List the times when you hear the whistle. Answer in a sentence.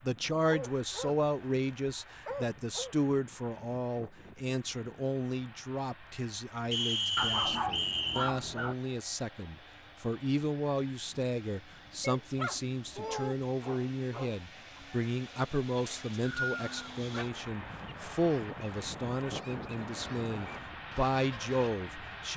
The whistle can be heard from 6.7 to 8.3 s and from 15.8 to 16.9 s.